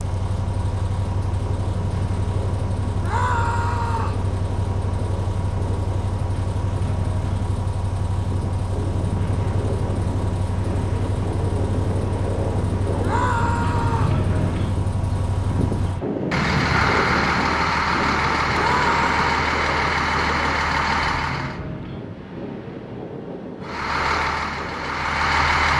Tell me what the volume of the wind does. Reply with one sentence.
The volume of the wind goes up, then down.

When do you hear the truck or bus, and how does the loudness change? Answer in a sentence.
The truck or bus can be heard from 0.0 to 21.6 s, getting louder; and briefly from 23.6 to 25.7 s.